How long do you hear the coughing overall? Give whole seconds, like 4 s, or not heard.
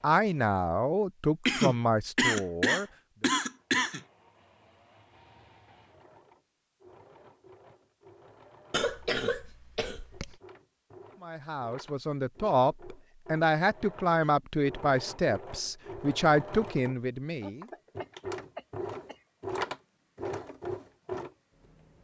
6 s.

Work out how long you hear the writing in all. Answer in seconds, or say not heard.
not heard.